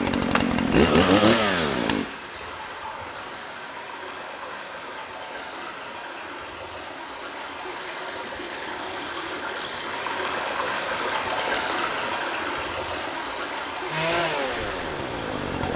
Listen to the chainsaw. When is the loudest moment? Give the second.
1 s.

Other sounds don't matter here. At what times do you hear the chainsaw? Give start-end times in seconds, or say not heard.
0.0-2.0, 13.8-15.7.